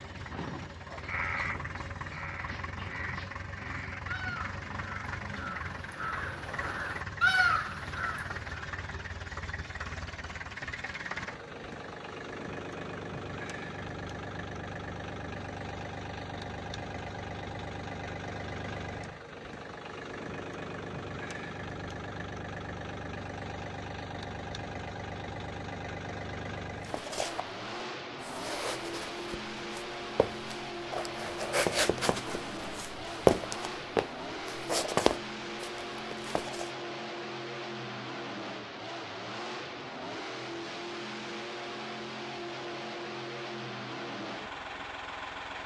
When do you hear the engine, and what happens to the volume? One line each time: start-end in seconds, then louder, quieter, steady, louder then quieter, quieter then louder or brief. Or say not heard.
0.0-45.6 steady.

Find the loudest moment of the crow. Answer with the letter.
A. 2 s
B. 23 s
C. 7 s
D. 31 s
C.